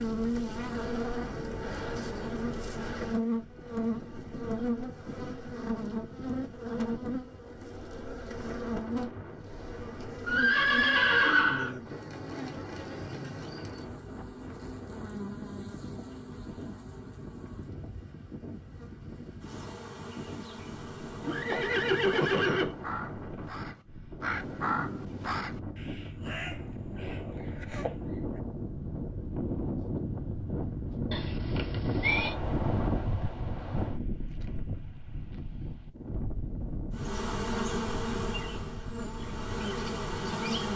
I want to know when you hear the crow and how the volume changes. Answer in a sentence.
You can hear the crow from 22.5 to 27.9 s, getting louder then quieter.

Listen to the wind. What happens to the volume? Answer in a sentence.
The loudness of the wind goes up.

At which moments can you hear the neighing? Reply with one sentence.
The neighing can be heard from 10.2 to 11.8 s, from 21.2 to 22.8 s and from 31.1 to 32.4 s.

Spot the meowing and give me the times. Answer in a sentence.
You can't hear the meowing here.